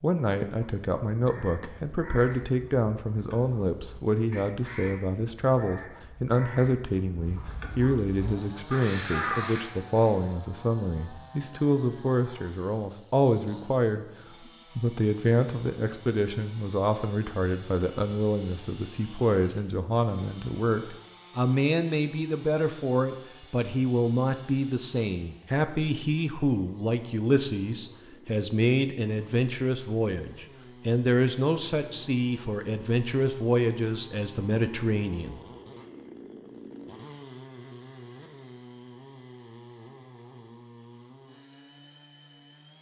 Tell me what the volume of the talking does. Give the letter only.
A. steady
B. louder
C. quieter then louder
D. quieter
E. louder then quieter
A.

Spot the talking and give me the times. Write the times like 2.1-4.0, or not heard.
0.0-14.1, 14.8-35.4.